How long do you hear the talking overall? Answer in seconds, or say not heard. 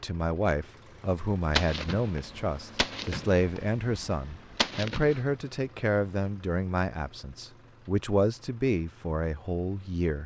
10 s.